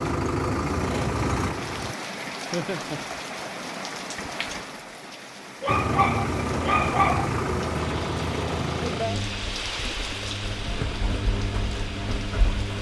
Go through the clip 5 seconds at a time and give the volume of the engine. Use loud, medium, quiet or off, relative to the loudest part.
loud, loud, medium.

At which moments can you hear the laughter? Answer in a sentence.
You can hear the laughter from 2.5 to 3.0 s.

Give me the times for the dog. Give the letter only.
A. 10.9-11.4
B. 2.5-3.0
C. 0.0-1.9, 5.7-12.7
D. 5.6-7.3
D.